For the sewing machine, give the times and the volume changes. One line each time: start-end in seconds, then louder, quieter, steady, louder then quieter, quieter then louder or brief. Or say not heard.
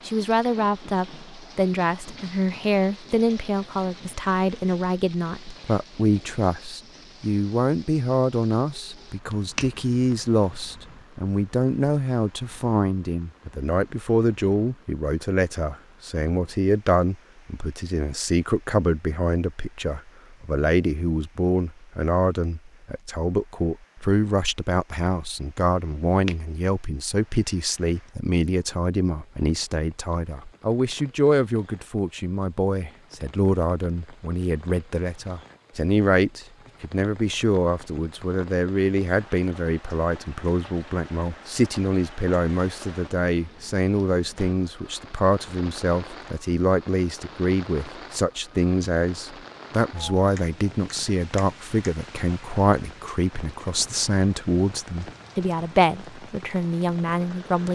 not heard.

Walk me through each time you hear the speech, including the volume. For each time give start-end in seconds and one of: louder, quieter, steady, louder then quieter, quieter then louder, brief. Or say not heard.
0.1-57.7 steady.